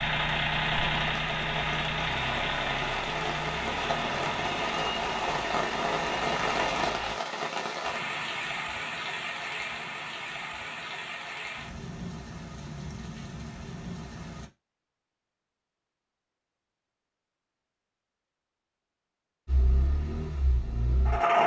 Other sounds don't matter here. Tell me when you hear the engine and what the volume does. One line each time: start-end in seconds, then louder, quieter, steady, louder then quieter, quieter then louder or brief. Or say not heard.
0.0-7.2 quieter
19.4-21.4 brief.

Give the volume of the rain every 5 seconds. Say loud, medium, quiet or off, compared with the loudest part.
loud, loud, medium, off, off.